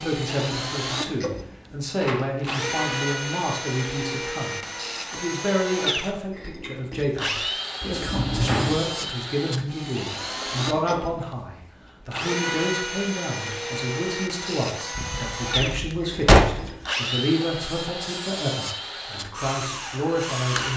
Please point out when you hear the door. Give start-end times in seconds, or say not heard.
2.0-2.6, 7.8-8.8, 14.9-16.7.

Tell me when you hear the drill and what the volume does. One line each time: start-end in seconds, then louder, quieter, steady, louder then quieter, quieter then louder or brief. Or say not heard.
0.0-20.7 steady.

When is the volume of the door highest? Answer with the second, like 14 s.
16 s.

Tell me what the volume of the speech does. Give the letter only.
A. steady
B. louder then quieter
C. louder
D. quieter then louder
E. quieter
A.